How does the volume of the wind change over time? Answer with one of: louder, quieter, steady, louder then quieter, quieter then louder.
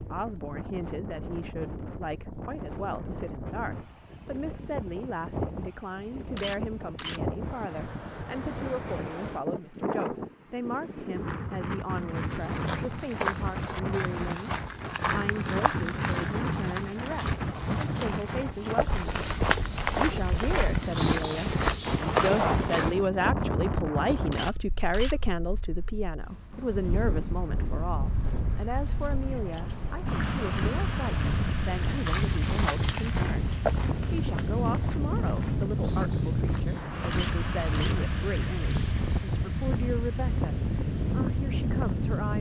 louder.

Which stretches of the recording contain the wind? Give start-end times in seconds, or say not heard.
0.0-42.3.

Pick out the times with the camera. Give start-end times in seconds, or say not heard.
6.3-7.2, 24.3-25.1, 37.1-38.0.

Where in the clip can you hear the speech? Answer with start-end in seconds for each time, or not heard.
0.0-42.3.